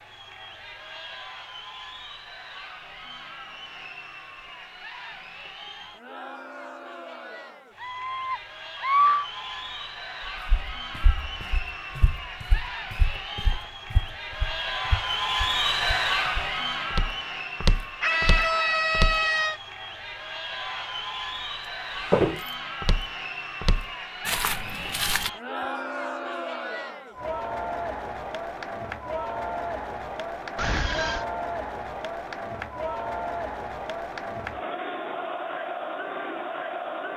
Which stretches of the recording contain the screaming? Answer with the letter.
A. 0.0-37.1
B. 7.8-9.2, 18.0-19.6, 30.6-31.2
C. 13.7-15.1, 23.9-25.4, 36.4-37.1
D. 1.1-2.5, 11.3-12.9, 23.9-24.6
B.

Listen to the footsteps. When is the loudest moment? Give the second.
22 s.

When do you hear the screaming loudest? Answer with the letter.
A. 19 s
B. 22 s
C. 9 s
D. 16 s
C.